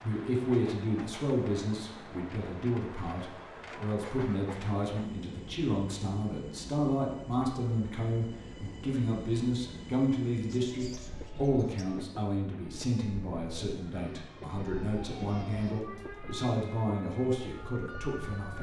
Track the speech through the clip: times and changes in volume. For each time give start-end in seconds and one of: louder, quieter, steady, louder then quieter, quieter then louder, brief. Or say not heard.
0.0-18.5 steady.